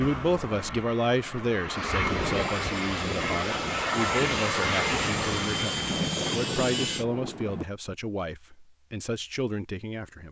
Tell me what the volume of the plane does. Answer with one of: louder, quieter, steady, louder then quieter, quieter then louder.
louder.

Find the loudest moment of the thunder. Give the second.
6 s.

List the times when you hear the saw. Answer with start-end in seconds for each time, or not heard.
1.7-7.0.